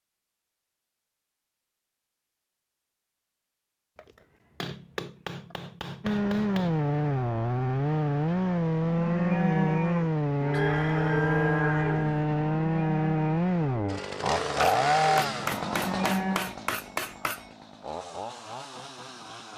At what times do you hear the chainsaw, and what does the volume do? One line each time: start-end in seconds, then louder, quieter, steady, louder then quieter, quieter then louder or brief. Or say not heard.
6.0-19.5 quieter.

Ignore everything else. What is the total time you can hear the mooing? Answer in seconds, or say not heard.
8 s.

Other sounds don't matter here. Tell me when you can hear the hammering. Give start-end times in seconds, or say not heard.
4.0-6.8, 14.6-17.5.